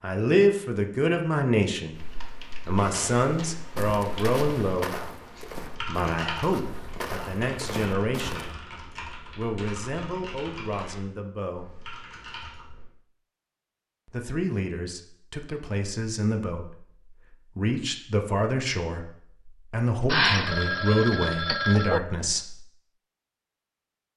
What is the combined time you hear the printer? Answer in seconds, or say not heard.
not heard.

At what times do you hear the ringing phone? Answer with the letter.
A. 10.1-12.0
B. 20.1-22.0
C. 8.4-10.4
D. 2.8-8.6
B.